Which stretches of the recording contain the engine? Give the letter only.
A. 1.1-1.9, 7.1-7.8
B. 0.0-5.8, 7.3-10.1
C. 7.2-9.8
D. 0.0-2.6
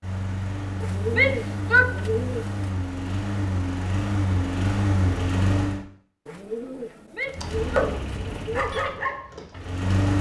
B.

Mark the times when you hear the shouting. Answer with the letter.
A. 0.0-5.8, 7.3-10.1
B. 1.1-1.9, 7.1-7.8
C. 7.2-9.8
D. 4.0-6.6
B.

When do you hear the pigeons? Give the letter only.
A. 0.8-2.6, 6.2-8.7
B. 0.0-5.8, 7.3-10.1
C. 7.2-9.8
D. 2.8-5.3
A.